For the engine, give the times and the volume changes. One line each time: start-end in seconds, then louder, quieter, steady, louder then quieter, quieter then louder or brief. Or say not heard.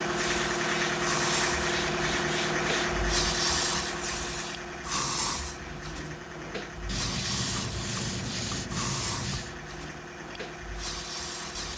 0.0-11.7 quieter.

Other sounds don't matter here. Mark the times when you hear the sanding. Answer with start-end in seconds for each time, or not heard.
0.1-3.0, 6.8-9.6.